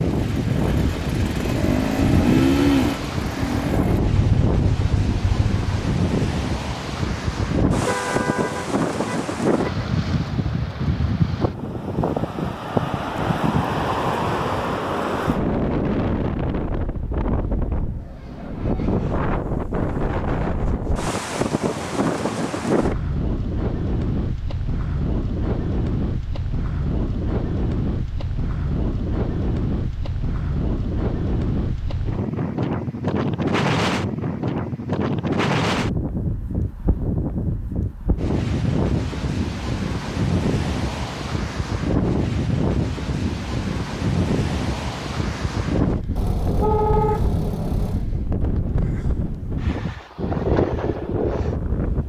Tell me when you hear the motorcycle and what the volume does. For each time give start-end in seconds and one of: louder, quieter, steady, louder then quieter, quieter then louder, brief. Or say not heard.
0.2-5.8 louder then quieter.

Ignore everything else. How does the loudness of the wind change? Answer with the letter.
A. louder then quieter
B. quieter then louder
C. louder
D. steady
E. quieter
D.